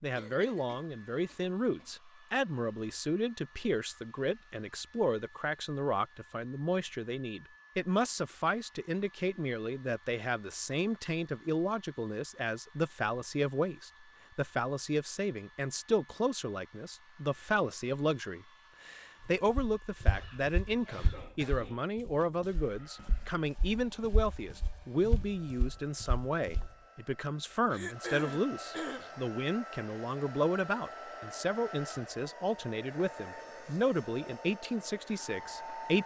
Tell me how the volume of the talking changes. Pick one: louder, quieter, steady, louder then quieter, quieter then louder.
steady.